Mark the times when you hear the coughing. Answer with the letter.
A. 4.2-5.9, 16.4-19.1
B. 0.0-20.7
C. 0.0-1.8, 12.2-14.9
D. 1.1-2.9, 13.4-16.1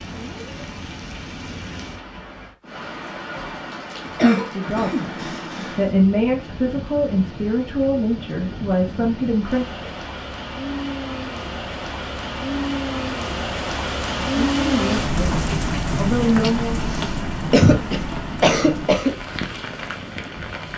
A.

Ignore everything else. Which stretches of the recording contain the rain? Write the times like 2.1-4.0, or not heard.
0.0-20.7.